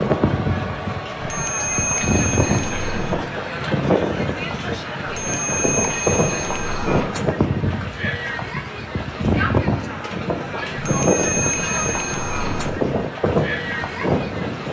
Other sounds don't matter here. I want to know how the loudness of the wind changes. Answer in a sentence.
The loudness of the wind stays about the same.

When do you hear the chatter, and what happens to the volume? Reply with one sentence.
You can hear the chatter from 0.0 to 14.6 s, at a steady volume.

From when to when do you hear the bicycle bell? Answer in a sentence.
The bicycle bell can be heard from 1.2 to 3.1 s, from 5.0 to 7.0 s and from 10.8 to 12.7 s.